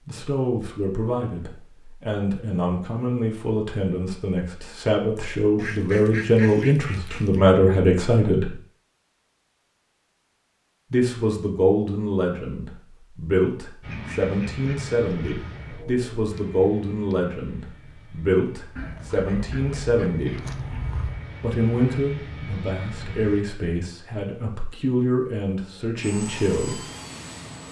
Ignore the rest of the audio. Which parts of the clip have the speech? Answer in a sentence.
The speech can be heard from 0.1 to 8.5 s, from 10.9 to 20.4 s and from 21.4 to 26.8 s.